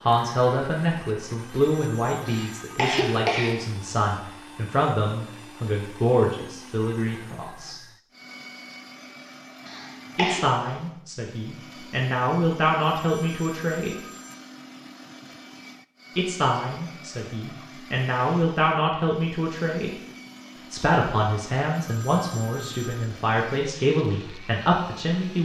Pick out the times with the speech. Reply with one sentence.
The speech can be heard from 0.0 to 7.8 s, from 10.2 to 13.9 s, from 16.1 to 19.9 s and from 20.7 to 25.4 s.